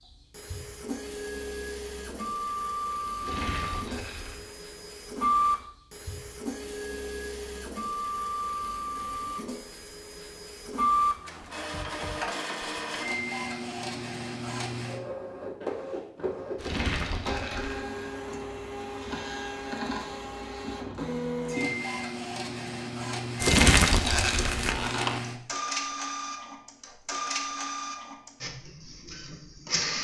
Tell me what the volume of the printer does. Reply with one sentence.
The volume of the printer stays about the same.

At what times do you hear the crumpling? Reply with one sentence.
The crumpling can be heard from 3.2 to 4.5 s, from 16.6 to 17.8 s and from 23.4 to 25.2 s.